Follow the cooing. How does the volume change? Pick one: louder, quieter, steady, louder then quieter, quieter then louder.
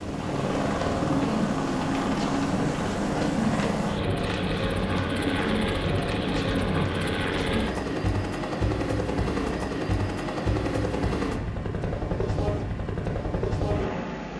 steady.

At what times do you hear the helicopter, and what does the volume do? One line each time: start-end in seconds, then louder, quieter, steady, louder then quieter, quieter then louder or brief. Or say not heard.
0.0-14.3 steady.